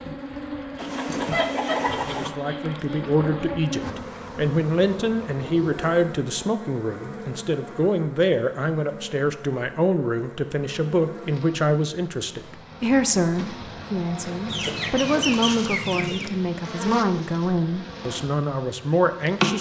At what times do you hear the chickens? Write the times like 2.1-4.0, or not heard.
0.8-2.3, 14.4-16.3.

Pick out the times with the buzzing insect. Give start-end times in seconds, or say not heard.
0.0-19.5.